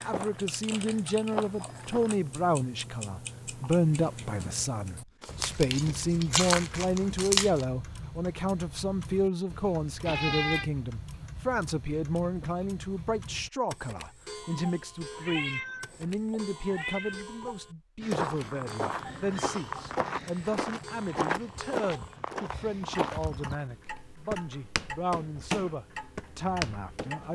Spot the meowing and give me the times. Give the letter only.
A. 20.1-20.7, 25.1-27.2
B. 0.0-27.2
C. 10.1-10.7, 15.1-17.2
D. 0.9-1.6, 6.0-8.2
C.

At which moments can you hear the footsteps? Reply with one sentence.
The footsteps can be heard from 0.0 to 2.2 s and from 18.0 to 27.2 s.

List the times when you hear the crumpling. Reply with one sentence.
You can hear the crumpling from 5.2 to 7.7 s.